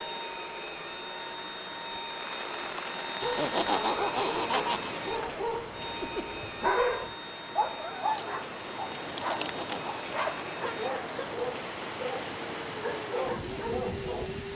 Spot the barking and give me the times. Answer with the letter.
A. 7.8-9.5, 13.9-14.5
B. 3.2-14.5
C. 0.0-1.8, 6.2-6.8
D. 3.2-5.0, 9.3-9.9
B.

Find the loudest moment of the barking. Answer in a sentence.
The loudest moment of the barking is at 7 seconds.